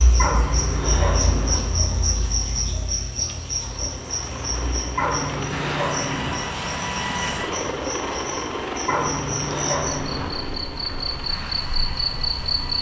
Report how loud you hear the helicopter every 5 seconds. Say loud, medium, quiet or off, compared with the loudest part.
medium, loud, medium.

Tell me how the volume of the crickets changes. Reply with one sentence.
The loudness of the crickets goes down, then up.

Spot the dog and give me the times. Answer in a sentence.
You can hear the dog from 0.1 to 1.6 s, from 5.0 to 6.3 s and from 8.8 to 10.2 s.